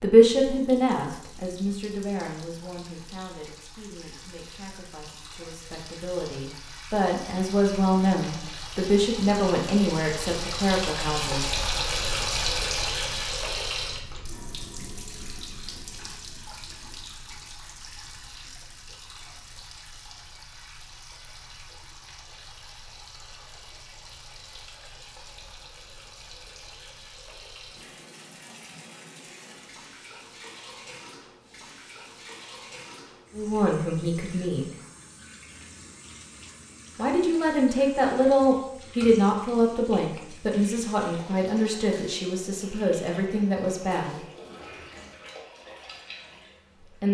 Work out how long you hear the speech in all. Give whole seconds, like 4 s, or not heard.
20 s.